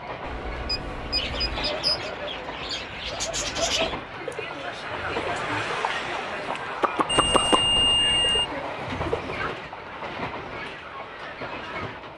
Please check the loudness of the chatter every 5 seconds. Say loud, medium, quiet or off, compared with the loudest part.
medium, loud, medium.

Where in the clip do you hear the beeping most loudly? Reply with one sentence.
The loudest moment of the beeping is at 8 seconds.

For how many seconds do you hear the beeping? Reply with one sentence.
The beeping can be heard for 3 seconds in total.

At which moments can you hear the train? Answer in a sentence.
You can hear the train from 0.0 to 12.1 s.